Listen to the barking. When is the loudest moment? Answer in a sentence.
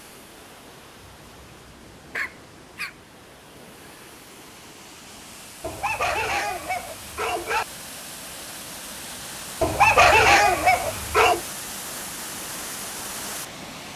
The volume of the barking peaks at 10 seconds.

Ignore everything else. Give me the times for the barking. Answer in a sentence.
You can hear the barking from 1.0 to 3.0 s, from 5.6 to 7.7 s and from 9.6 to 11.4 s.